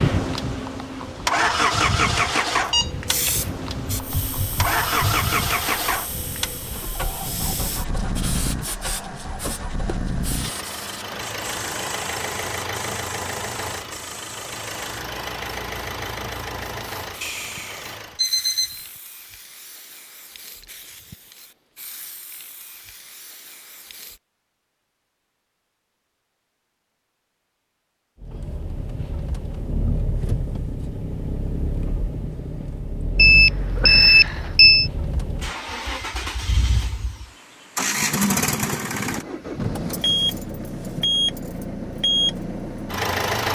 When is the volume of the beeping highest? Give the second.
34 s.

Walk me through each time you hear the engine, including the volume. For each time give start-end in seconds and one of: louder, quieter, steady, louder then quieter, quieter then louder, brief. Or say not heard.
0.0-18.2 quieter
28.2-43.5 louder.